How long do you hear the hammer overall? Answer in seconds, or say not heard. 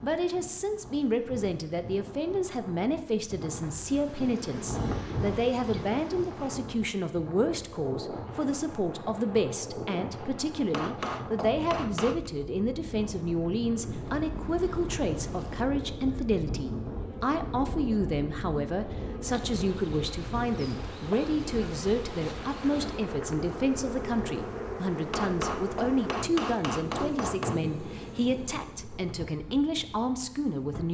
4 s.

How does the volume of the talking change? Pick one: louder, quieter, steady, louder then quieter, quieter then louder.
steady.